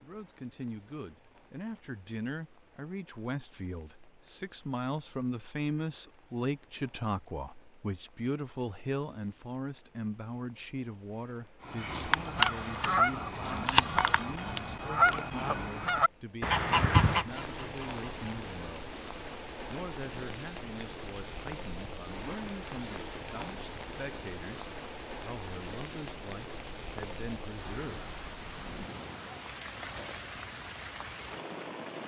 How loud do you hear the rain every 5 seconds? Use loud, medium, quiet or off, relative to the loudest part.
quiet, quiet, quiet, loud, loud, loud, loud.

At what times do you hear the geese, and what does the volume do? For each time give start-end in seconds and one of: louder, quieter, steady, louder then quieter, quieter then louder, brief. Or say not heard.
11.7-18.5 steady.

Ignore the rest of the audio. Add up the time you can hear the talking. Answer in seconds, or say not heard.
27 s.